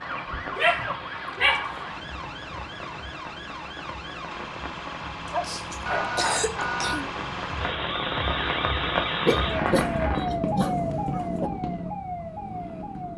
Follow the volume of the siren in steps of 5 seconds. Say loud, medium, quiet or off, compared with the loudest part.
medium, loud, loud.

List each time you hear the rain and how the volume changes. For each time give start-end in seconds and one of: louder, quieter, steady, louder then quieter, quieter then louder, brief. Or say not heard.
0.0-10.3 louder.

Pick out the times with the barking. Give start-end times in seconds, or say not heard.
0.6-1.7, 5.3-6.5, 9.2-11.5.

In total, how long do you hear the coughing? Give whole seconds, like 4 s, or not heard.
2 s.